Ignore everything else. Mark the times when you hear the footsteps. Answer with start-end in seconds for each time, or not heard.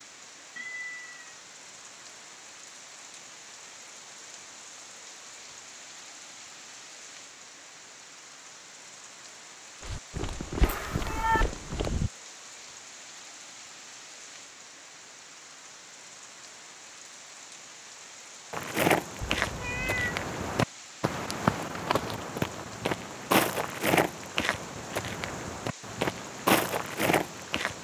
9.8-12.1, 18.5-27.7.